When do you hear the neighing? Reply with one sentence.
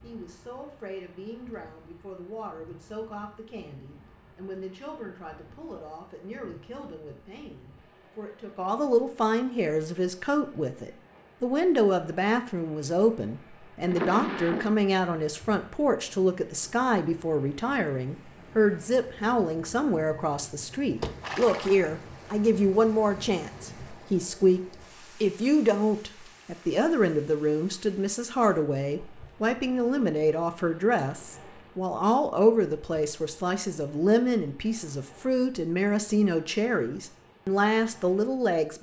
You can hear the neighing from 13.8 to 14.8 s and from 21.0 to 21.9 s.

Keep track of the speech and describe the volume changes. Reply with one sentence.
The volume of the speech goes up.